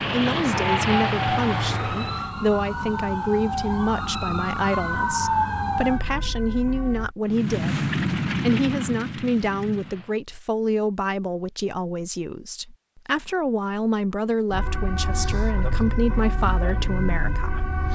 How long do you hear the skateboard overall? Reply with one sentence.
The skateboard can't be heard in this clip.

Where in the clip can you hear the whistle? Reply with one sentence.
The whistle can't be heard in this clip.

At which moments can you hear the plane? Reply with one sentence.
You can hear the plane from 0.0 to 2.3 s and from 7.2 to 10.2 s.